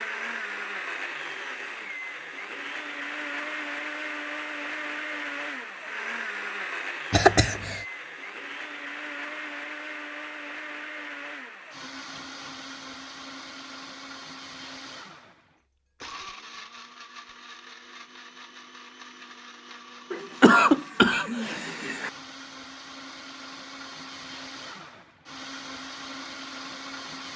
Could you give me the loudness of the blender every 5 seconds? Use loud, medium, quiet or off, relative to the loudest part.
loud, loud, medium, medium, medium, medium.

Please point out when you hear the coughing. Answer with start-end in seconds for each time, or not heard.
7.1-7.8, 20.1-22.1.